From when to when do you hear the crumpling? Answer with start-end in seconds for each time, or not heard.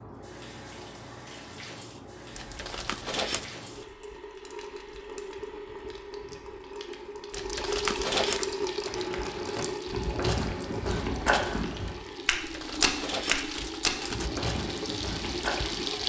2.4-3.5, 7.3-8.4, 12.3-14.3.